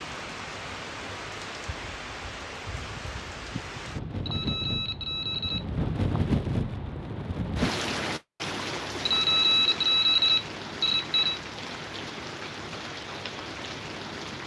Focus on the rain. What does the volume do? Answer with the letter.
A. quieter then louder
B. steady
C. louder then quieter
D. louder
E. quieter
C.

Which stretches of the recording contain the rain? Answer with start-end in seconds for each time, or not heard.
0.0-14.4.